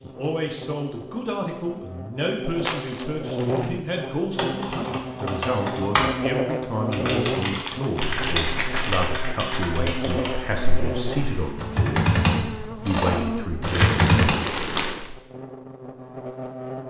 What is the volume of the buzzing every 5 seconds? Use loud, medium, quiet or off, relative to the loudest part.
loud, loud, loud, medium.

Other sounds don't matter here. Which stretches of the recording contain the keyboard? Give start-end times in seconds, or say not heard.
4.3-14.3.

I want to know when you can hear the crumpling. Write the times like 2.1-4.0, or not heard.
2.6-3.8, 7.0-9.1, 13.7-15.1.